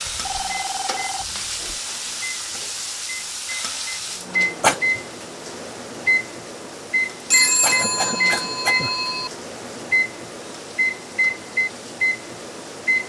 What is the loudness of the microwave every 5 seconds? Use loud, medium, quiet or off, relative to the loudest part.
medium, loud, loud.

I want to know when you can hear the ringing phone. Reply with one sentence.
The ringing phone can be heard from 0.1 to 1.8 s and from 7.3 to 9.3 s.